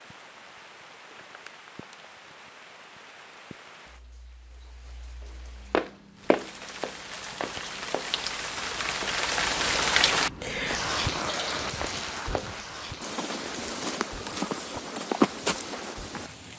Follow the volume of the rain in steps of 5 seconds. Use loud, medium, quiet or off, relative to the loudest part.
quiet, loud, loud, quiet.